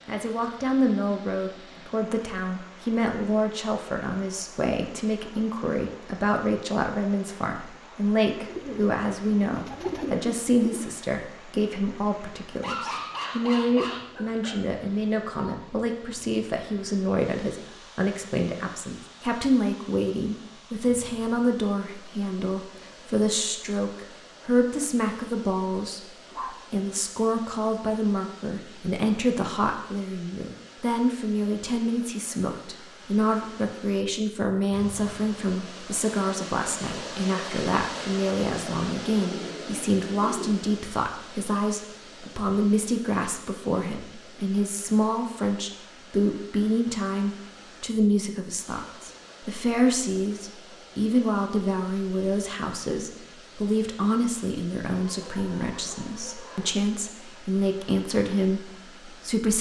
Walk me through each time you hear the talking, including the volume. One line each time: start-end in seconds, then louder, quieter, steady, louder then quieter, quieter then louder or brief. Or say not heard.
0.1-59.5 steady.